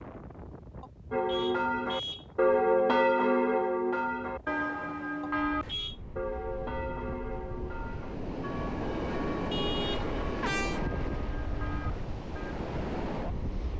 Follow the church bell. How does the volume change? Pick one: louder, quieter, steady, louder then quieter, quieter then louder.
quieter.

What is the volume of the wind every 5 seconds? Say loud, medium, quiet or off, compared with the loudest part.
quiet, loud, loud.